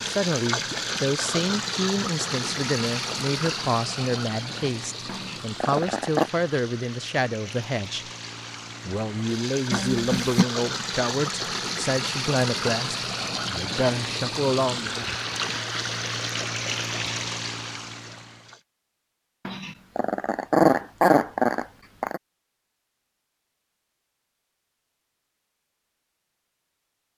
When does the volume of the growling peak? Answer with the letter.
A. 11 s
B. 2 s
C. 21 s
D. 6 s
C.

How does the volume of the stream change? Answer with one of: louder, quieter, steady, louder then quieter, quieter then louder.
quieter then louder.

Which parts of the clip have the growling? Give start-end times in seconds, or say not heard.
5.0-6.3, 9.7-10.4, 19.4-22.2.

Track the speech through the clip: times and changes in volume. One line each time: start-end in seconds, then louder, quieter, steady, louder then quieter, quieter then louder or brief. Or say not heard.
0.0-8.1 steady
8.8-15.0 steady.